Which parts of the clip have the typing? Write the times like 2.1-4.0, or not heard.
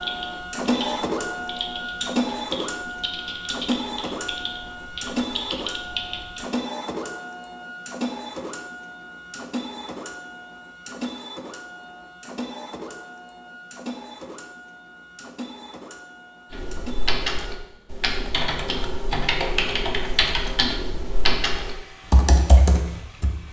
0.0-6.5, 16.5-23.4.